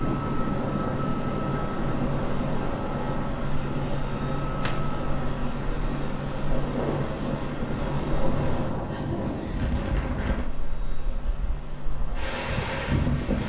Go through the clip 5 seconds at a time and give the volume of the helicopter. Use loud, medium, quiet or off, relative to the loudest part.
loud, loud, medium.